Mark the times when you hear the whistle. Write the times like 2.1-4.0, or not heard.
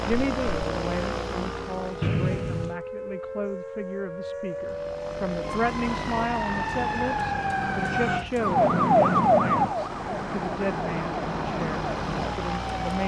2.0-2.8.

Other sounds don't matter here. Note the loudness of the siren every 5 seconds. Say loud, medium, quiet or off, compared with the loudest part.
medium, loud, medium.